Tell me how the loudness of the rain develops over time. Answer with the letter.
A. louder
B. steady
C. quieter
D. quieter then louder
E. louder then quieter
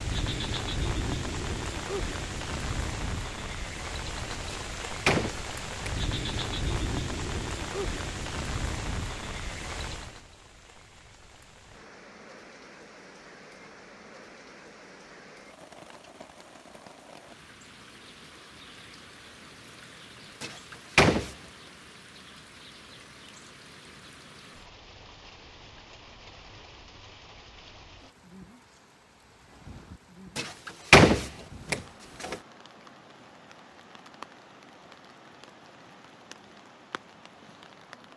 C.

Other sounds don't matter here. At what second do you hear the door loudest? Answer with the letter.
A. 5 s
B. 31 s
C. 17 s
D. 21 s
B.